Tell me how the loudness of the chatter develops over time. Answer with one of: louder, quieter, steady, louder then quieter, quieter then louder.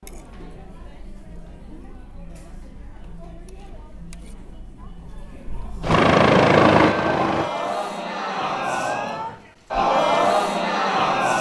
louder.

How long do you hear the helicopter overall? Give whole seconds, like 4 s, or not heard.
2 s.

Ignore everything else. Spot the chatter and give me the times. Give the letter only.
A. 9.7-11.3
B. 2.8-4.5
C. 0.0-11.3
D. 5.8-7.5
C.